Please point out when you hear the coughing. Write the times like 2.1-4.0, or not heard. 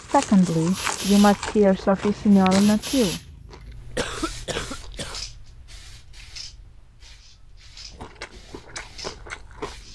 4.0-5.2.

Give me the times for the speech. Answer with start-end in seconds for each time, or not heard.
0.0-3.2.